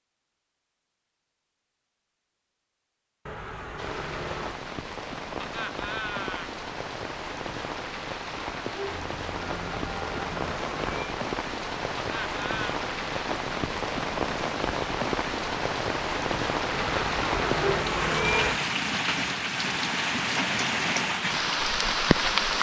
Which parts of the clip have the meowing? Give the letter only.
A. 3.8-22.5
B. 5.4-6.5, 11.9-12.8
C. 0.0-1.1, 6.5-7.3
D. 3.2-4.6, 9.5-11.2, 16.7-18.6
D.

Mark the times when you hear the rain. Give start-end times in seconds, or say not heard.
3.8-22.5.